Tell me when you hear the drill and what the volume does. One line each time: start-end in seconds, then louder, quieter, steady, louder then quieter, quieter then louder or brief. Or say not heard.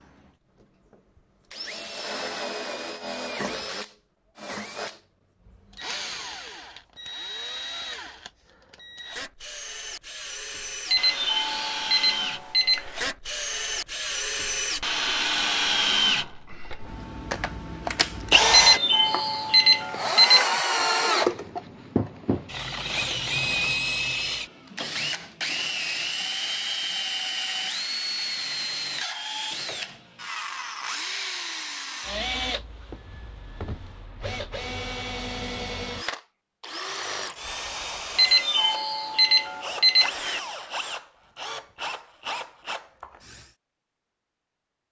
0.0-43.5 louder then quieter.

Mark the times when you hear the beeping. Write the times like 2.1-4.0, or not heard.
10.9-13.1, 18.5-20.5, 38.1-40.4.